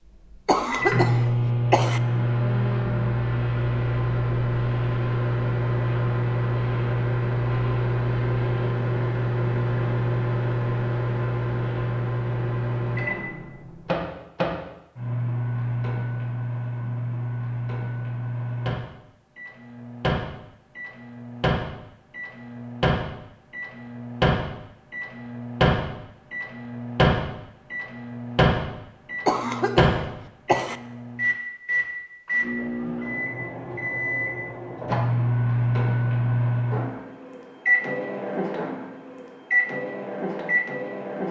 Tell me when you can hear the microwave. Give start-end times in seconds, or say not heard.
0.1-41.2.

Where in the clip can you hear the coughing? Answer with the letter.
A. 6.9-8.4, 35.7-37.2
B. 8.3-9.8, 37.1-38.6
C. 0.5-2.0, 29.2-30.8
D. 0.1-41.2
C.